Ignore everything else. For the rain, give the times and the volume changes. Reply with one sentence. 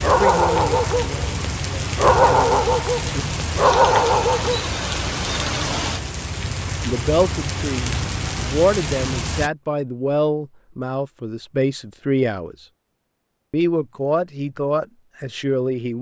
You can hear the rain from 0.0 to 9.5 s, at a steady volume.